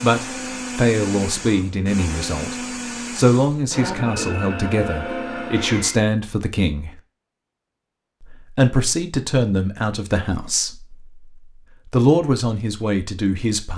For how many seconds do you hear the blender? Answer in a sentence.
The blender can be heard for 6 seconds in total.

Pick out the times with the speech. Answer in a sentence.
You can hear the speech from 0.0 to 2.5 s, from 3.1 to 6.9 s, from 8.3 to 10.9 s and from 11.9 to 13.7 s.